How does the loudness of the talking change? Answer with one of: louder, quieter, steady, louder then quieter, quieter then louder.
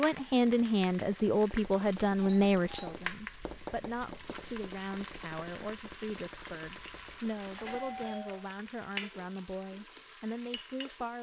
quieter.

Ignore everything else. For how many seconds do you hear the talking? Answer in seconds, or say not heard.
11 s.